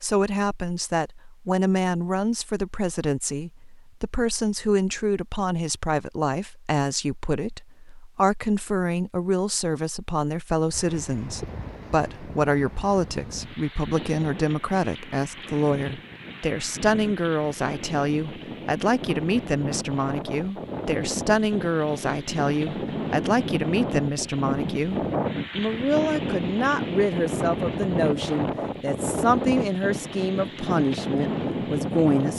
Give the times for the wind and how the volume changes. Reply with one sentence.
The wind can be heard from 10.7 to 32.3 s, getting louder.